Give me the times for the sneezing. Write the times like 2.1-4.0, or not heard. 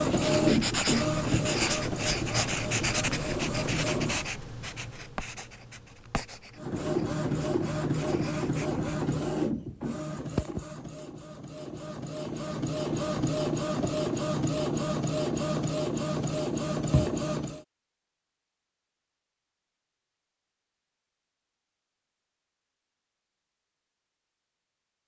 not heard.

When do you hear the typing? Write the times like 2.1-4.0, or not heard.
not heard.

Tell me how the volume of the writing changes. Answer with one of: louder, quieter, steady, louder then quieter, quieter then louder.
quieter.